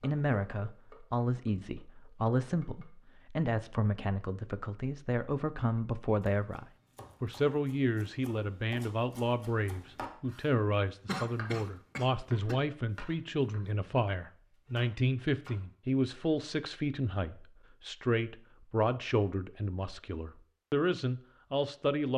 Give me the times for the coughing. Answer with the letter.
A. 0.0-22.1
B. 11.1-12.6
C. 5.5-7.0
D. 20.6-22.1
B.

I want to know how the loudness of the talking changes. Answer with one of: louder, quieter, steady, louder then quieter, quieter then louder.
steady.